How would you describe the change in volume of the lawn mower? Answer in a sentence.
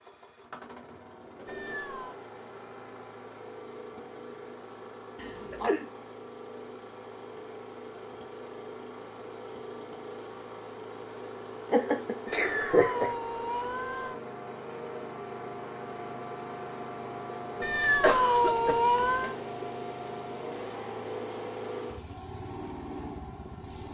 The volume of the lawn mower goes up.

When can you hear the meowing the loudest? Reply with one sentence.
The loudest moment of the meowing is at 18 seconds.